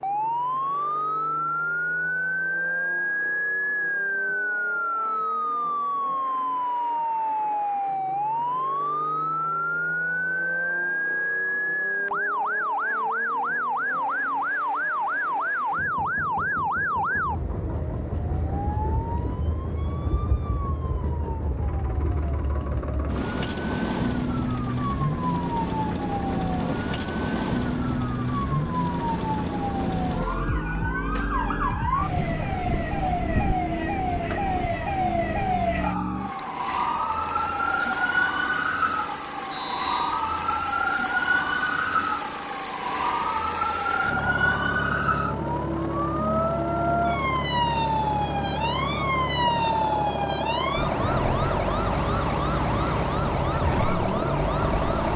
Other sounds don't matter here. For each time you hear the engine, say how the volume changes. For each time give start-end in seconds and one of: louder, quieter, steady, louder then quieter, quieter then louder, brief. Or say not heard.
0.0-55.1 louder.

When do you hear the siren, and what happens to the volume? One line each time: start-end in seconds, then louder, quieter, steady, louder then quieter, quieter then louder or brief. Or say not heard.
0.0-55.1 steady.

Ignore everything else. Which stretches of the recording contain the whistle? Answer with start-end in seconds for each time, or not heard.
39.5-40.1.